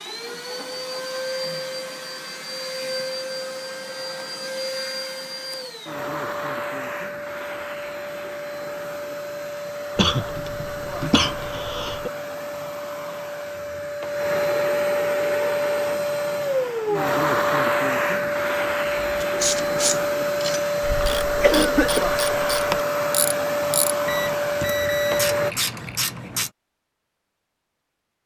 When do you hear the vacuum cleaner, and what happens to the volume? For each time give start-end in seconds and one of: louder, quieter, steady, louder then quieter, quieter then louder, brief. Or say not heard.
0.0-25.6 louder.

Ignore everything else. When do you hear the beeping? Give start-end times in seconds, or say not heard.
24.1-25.3.